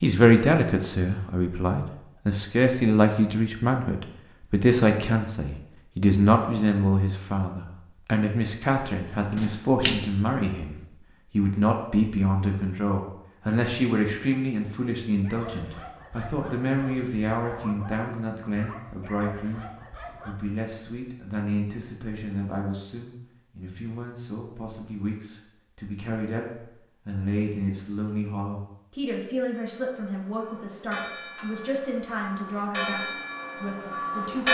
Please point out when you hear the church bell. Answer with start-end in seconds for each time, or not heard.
29.4-34.4.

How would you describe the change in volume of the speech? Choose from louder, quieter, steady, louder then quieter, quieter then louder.
quieter.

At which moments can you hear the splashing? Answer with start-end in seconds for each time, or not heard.
9.1-10.4.